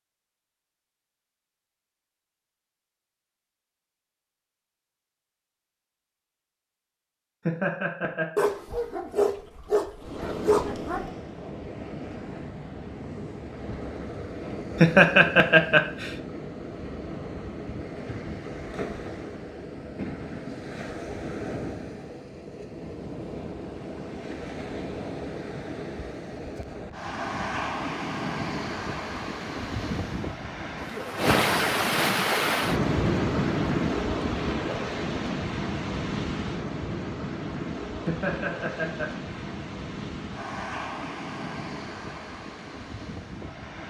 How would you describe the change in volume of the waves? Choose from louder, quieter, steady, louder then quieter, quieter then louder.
louder then quieter.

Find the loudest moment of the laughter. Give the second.
15 s.